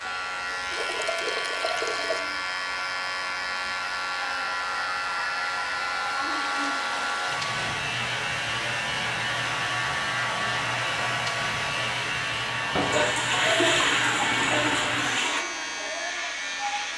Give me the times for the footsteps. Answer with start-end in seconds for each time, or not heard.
not heard.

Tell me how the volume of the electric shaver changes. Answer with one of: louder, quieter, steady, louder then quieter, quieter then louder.
steady.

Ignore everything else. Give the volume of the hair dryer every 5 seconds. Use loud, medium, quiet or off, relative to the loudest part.
medium, loud, loud, medium.